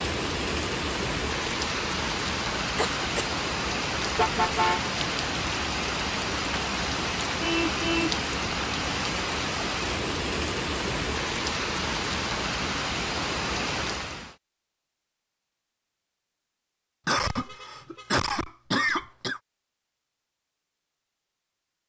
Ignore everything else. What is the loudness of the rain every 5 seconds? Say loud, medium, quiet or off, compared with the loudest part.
loud, loud, loud, off, off.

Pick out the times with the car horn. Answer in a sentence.
The car horn can be heard from 4.2 to 4.8 s, from 7.4 to 8.2 s and from 17.2 to 18.3 s.